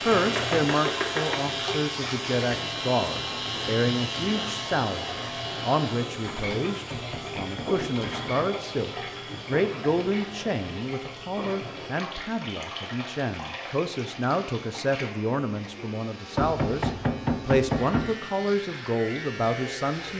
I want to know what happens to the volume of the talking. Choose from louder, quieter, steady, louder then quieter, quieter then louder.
steady.